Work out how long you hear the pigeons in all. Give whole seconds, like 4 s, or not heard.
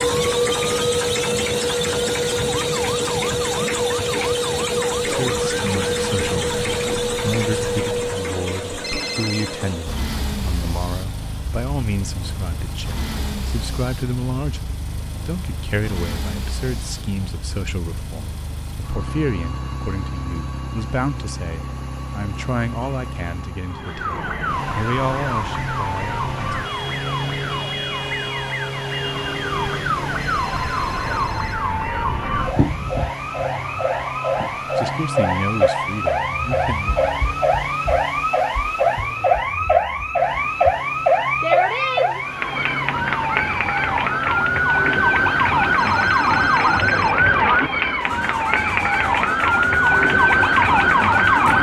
not heard.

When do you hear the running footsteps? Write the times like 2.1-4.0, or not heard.
not heard.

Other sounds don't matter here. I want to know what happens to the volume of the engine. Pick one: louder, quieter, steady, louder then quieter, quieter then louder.
quieter.